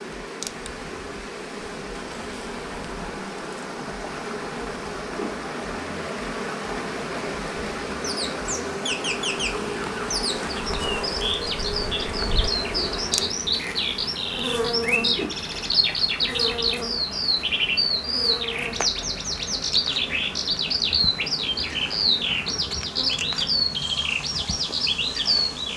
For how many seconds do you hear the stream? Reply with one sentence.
The stream can be heard for 26 seconds in total.